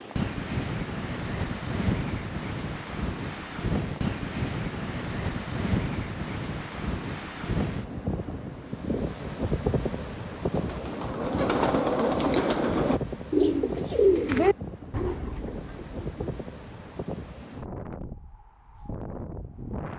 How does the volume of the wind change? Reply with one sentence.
The loudness of the wind goes down.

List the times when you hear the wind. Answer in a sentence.
The wind can be heard from 0.0 to 19.9 s.